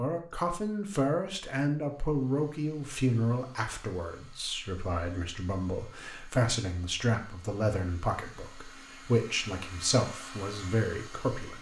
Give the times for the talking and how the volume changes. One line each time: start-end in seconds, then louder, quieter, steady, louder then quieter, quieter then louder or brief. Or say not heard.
0.0-11.5 steady.